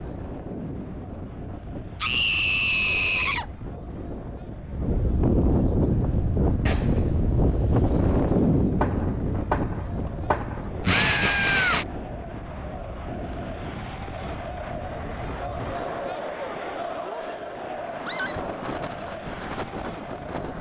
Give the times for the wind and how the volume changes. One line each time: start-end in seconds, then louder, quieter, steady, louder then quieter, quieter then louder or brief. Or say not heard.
0.0-20.5 louder then quieter.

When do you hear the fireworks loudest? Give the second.
11 s.